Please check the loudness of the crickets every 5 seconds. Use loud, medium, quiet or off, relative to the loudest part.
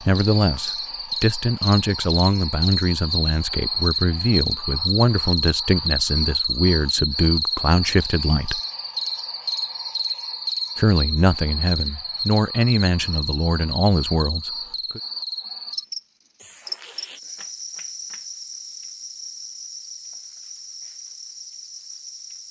loud, loud, loud, medium, quiet.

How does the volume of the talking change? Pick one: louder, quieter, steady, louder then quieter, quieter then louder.
steady.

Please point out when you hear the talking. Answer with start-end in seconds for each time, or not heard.
0.0-8.6, 10.8-15.0.